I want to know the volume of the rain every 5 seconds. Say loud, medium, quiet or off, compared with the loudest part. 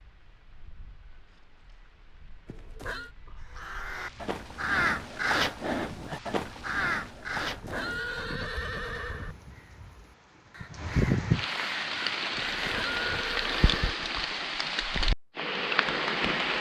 quiet, quiet, loud, loud.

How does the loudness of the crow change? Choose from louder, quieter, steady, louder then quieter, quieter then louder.
quieter then louder.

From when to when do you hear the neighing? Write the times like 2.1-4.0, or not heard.
2.5-3.1, 7.3-9.3, 12.3-14.0.